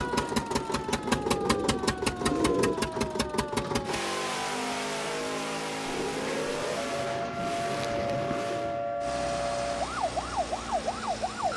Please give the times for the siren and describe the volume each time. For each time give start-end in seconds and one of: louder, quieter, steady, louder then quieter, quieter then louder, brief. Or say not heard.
0.0-11.5 louder.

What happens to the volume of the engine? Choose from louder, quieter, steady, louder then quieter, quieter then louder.
quieter.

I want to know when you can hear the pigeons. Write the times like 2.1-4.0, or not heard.
1.0-2.8, 6.0-8.7.